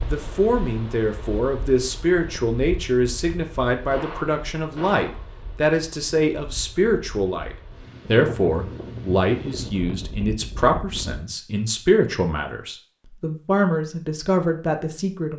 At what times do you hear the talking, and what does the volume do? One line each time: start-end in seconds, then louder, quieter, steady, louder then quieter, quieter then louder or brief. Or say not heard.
0.1-15.3 steady.